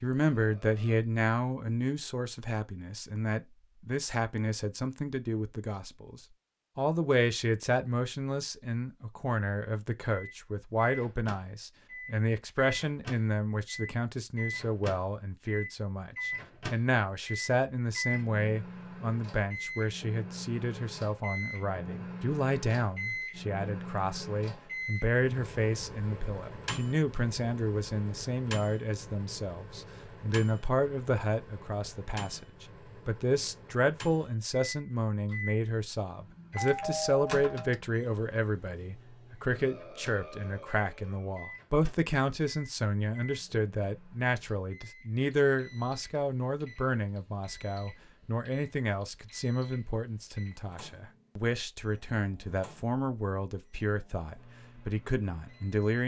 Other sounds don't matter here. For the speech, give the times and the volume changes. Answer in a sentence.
You can hear the speech from 0.0 to 56.0 s, at a steady volume.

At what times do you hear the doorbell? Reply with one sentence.
The doorbell can be heard from 36.5 to 37.8 s.